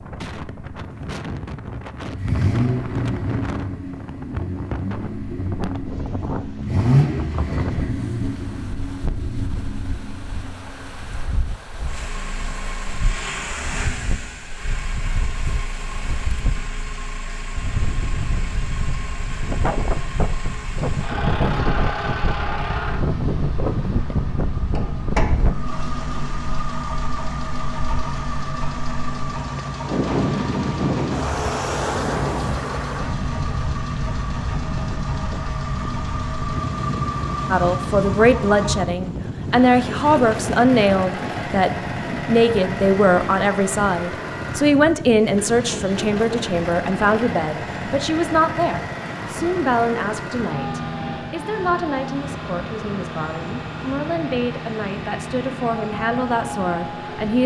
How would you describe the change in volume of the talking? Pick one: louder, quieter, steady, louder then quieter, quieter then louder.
quieter.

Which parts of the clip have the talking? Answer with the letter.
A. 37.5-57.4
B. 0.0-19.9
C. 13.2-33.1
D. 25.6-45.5
A.